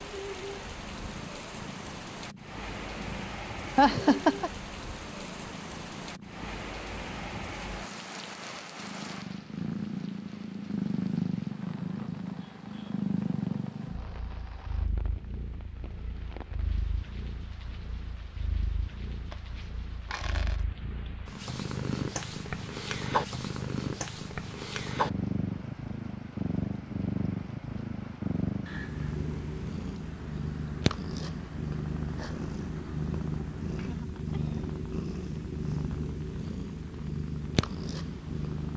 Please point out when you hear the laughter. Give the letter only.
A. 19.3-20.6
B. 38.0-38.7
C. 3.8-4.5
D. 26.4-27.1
C.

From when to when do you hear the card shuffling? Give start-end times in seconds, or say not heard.
19.3-20.6.